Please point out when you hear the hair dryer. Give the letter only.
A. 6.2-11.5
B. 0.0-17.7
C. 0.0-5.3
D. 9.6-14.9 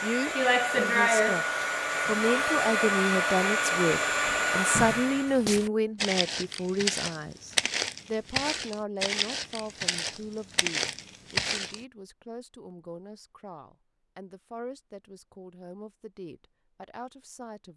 C.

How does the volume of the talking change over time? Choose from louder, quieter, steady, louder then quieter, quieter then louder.
quieter.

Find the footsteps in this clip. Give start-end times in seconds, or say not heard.
5.2-11.8.